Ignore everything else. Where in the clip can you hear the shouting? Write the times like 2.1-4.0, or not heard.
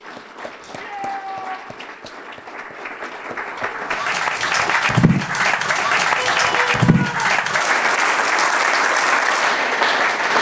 0.6-1.9, 6.2-7.3.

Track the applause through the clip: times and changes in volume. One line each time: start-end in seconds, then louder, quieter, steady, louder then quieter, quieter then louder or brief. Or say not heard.
0.0-10.3 louder.